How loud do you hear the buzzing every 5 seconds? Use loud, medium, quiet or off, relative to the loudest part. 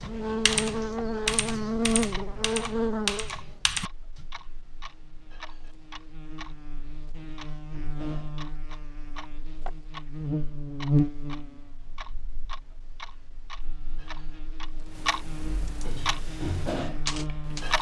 loud, quiet, loud, medium.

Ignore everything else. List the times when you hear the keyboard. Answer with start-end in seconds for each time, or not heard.
0.0-4.2, 15.7-17.7.